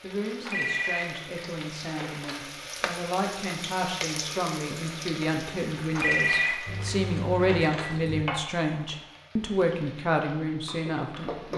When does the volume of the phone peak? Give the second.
6 s.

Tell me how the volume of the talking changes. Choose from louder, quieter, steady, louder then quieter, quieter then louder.
louder.